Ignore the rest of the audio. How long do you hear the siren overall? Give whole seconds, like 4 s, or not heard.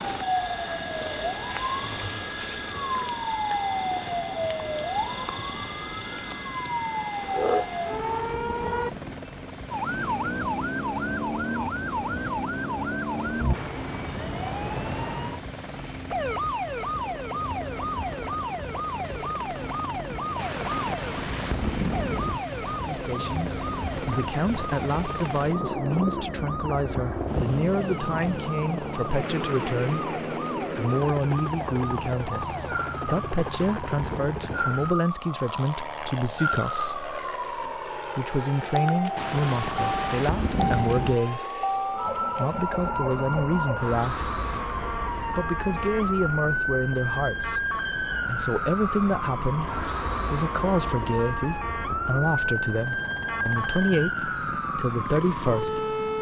56 s.